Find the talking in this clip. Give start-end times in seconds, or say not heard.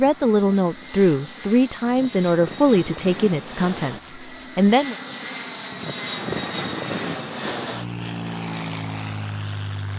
0.0-5.0.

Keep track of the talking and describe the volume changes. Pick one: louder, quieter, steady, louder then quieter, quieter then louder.
quieter.